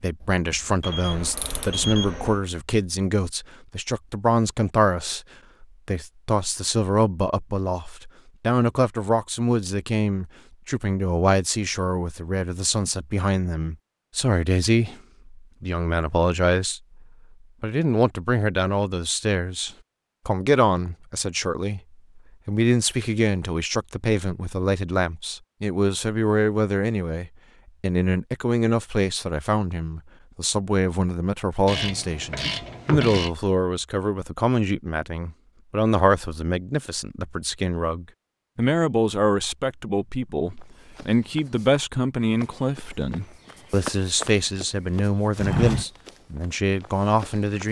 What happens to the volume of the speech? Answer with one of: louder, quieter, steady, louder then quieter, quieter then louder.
steady.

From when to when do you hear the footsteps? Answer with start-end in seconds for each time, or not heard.
40.5-47.6.